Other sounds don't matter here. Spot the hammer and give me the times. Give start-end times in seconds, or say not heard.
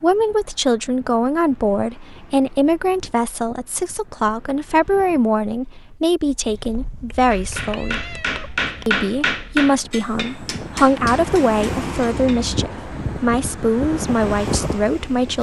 7.2-12.5.